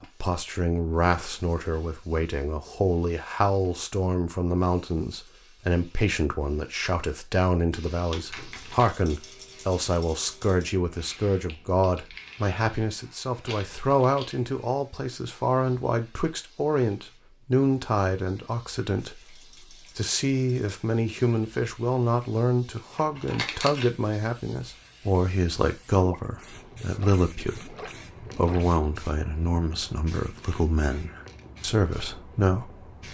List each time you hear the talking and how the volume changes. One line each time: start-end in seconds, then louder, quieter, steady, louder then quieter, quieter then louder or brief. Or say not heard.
0.0-32.9 steady.